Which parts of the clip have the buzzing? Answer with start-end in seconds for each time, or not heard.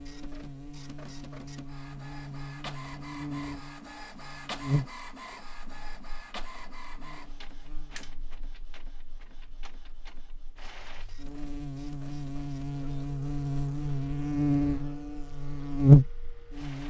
0.0-16.8.